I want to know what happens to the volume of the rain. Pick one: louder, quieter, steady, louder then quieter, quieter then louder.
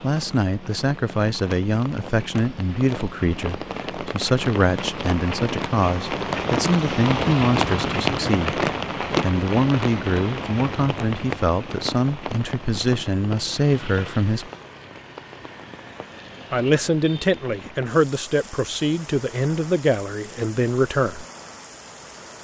louder then quieter.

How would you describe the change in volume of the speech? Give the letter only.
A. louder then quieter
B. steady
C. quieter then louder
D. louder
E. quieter
B.